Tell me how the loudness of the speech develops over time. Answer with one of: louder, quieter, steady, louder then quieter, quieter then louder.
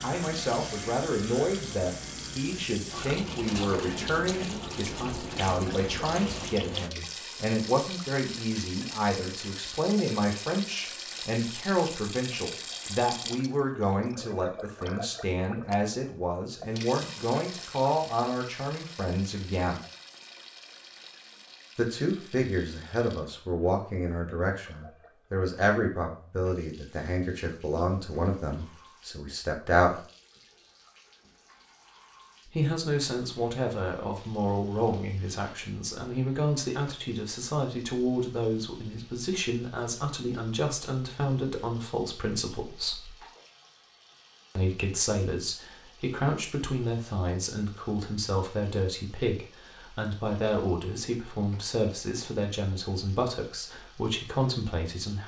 steady.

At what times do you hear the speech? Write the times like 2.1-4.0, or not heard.
0.0-19.8, 21.8-30.0, 32.5-43.1, 44.5-55.2.